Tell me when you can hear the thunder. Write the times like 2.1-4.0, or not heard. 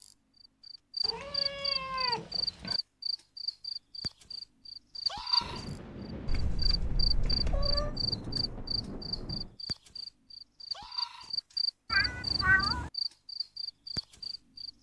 5.4-9.6.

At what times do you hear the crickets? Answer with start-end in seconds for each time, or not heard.
0.0-14.7.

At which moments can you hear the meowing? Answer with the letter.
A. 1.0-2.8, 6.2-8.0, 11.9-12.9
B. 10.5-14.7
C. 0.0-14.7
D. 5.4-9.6
A.